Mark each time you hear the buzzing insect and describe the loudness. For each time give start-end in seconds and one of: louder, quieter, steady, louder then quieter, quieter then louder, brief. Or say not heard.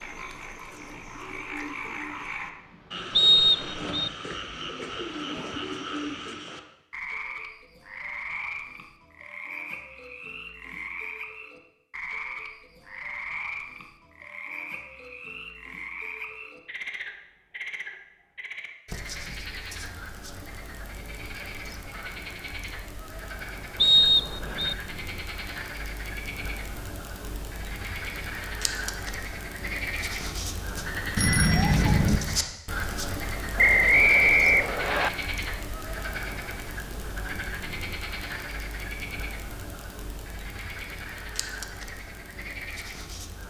not heard.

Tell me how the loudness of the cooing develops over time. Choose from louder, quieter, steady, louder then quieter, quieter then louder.
quieter then louder.